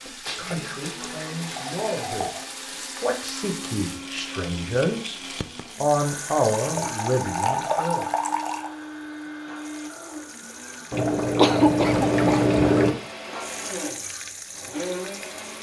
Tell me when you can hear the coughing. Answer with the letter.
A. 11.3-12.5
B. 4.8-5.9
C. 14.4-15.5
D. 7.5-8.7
A.